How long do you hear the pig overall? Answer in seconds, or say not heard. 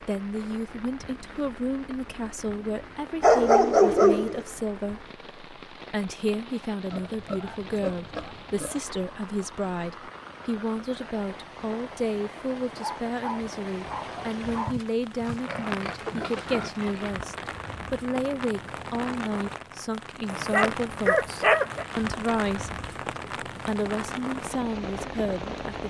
5 s.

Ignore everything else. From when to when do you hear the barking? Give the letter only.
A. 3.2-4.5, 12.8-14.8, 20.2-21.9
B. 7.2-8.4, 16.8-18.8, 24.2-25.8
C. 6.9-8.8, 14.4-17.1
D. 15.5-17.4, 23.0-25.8
A.